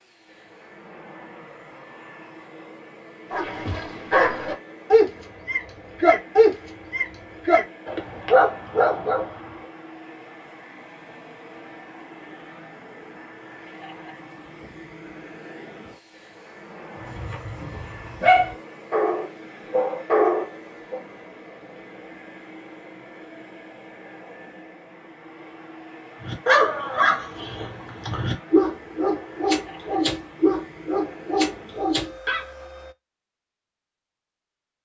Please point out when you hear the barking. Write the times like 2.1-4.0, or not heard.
3.3-9.5, 17.0-21.0, 26.2-32.4.